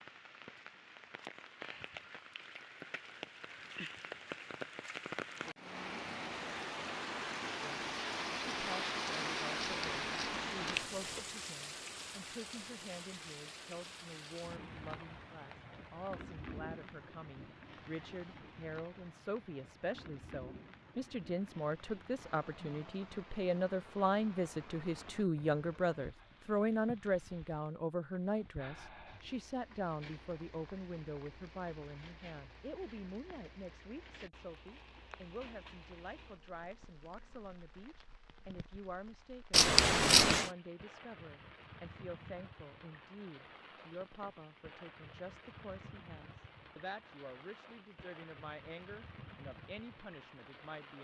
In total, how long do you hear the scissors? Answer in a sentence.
The scissors can be heard for 3 seconds in total.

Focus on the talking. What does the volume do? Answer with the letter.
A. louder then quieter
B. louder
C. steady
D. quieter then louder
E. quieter
A.